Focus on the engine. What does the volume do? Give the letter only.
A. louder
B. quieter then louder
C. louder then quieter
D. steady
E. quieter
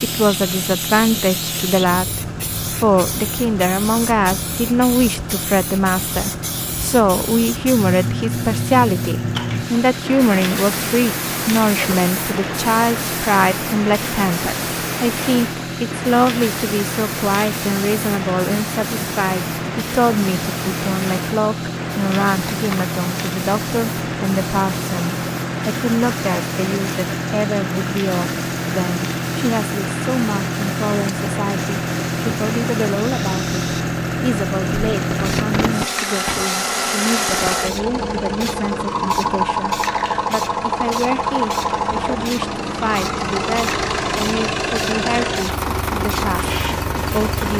A.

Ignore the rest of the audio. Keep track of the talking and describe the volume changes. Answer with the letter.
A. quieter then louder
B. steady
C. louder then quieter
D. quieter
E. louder
D.